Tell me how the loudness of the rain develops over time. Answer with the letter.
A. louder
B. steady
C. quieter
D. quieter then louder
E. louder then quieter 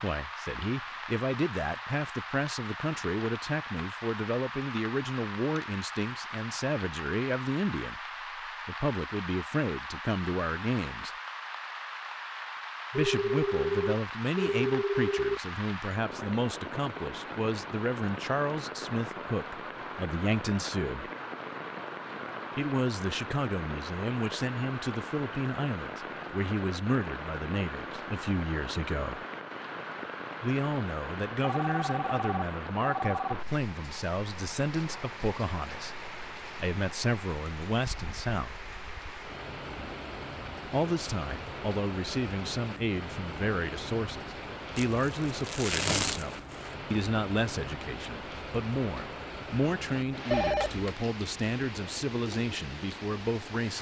B.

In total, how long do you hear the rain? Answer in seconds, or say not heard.
54 s.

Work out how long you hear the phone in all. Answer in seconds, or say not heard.
5 s.